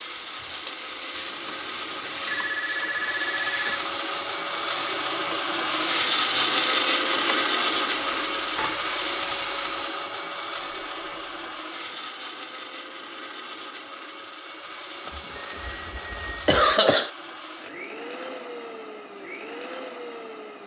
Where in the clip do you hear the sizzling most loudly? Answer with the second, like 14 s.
6 s.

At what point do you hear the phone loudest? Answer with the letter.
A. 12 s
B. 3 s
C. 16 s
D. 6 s
B.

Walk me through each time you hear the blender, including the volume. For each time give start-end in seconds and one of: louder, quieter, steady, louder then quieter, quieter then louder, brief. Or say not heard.
0.0-20.6 louder then quieter.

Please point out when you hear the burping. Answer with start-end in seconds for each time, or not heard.
not heard.